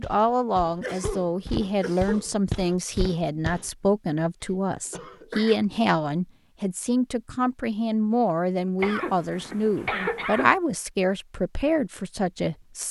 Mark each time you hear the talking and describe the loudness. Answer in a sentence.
You can hear the talking from 0.0 to 12.8 s, at a steady volume.